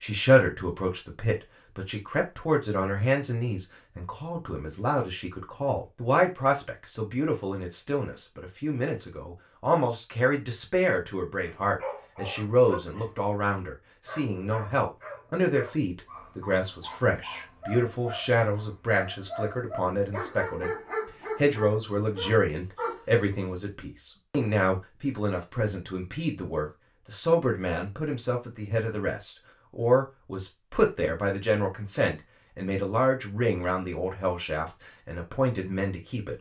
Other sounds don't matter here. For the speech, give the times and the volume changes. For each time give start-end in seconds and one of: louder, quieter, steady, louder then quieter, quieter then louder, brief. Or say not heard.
0.0-20.7 steady
21.4-36.3 steady.